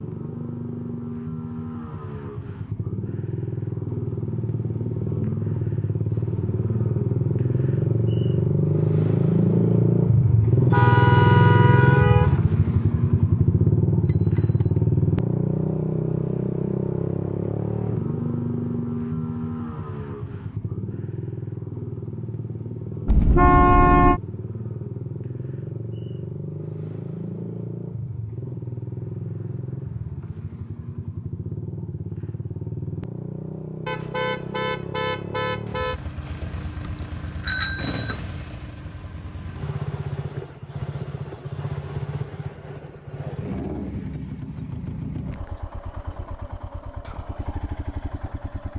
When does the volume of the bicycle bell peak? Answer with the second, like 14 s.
38 s.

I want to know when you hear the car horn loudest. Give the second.
24 s.